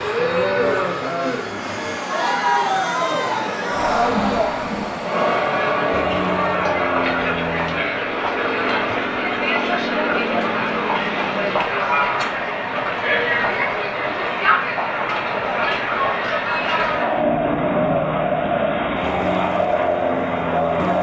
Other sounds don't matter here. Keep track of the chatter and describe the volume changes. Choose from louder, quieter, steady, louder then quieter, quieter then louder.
steady.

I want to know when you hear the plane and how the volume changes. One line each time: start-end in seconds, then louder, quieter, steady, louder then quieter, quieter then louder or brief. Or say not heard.
0.0-20.9 steady.